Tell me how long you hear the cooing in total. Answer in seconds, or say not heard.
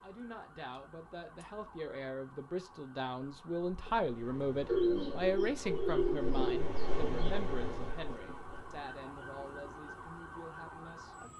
3 s.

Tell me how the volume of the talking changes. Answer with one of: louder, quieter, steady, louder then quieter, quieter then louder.
louder then quieter.